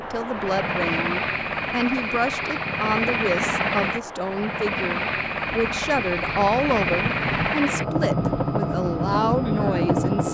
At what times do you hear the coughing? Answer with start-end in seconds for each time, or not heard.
not heard.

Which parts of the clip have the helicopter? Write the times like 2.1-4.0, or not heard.
0.0-10.2.